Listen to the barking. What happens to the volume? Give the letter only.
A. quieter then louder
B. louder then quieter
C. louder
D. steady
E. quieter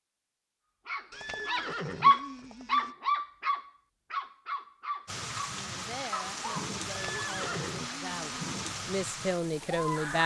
E.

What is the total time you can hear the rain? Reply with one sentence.
You can hear the rain for 5 seconds altogether.